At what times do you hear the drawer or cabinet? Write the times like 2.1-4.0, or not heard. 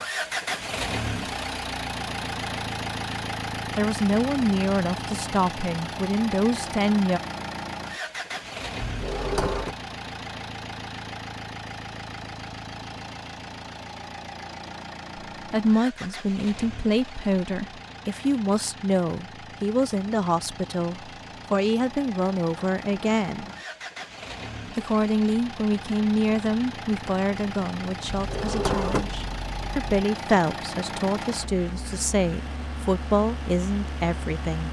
8.8-9.8, 28.1-30.1.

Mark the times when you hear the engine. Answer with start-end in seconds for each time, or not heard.
0.0-34.6.